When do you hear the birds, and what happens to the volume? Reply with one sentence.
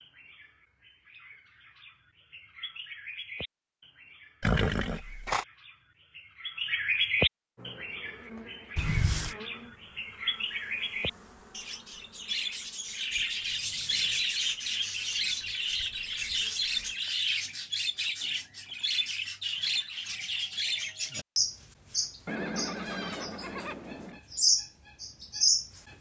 The birds can be heard from 0.0 to 25.9 s, getting louder.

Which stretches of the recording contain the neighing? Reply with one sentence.
You can hear the neighing from 4.4 to 5.5 s, from 8.8 to 9.3 s and from 22.2 to 24.2 s.